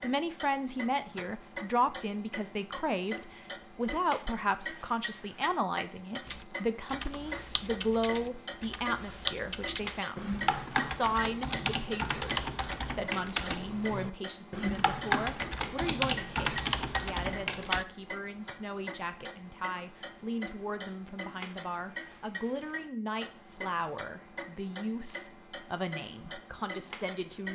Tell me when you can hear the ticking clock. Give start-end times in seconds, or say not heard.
0.0-27.5.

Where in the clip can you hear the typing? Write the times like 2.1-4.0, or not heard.
6.2-17.9.